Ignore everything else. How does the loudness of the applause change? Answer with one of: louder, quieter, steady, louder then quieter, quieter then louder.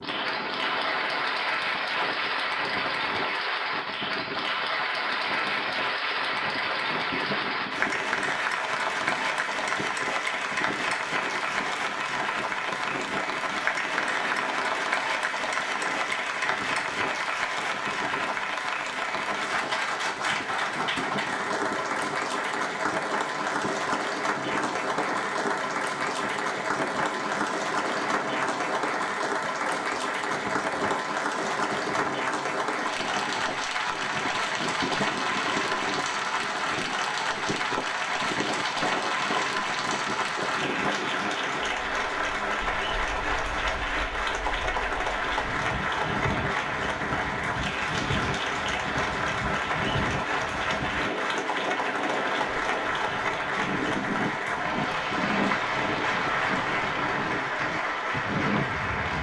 steady.